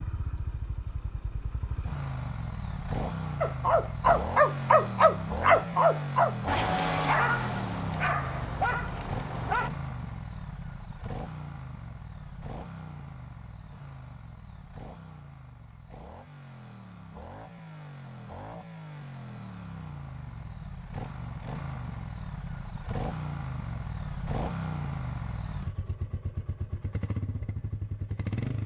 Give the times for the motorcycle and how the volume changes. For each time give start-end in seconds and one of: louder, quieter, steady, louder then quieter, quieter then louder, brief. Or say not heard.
0.0-28.6 quieter then louder.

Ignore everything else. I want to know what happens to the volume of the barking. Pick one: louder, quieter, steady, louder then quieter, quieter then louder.
quieter.